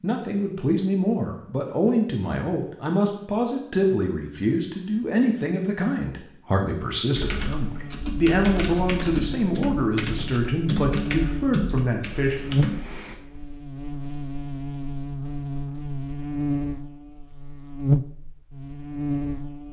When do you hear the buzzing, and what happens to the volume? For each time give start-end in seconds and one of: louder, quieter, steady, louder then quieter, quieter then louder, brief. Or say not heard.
7.5-19.6 louder.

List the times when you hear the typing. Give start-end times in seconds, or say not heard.
7.2-13.5.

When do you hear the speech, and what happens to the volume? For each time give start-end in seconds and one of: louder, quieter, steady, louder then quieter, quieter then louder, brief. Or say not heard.
0.0-12.3 steady.